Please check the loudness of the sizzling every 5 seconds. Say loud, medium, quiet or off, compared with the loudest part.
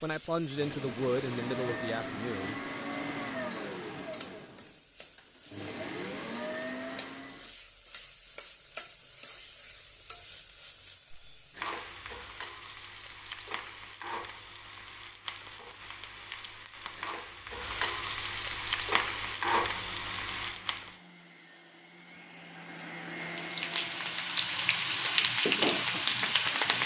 quiet, quiet, quiet, medium, medium, loud.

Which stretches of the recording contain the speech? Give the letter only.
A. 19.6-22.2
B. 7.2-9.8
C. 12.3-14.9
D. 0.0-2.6
D.